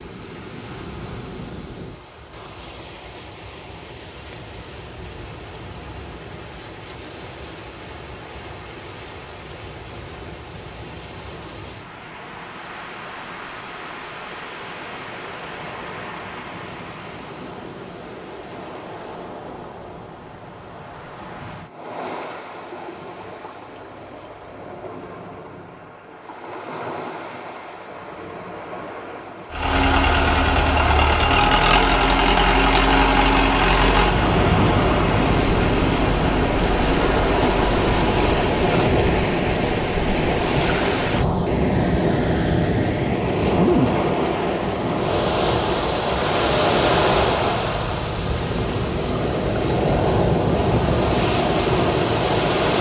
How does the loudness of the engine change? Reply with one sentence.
The loudness of the engine goes down.